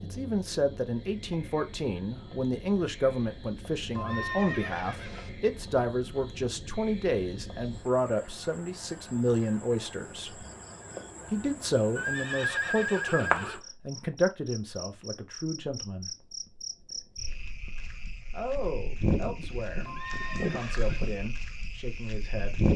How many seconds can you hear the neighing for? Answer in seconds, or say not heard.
4 s.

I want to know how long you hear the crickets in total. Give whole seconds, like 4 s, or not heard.
23 s.